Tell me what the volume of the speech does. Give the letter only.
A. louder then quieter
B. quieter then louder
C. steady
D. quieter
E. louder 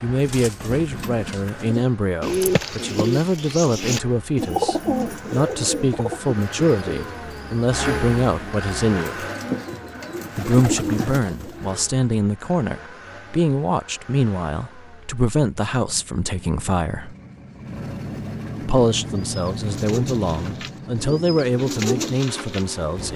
C.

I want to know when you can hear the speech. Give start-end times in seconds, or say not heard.
0.0-9.2, 10.3-17.1, 18.6-23.1.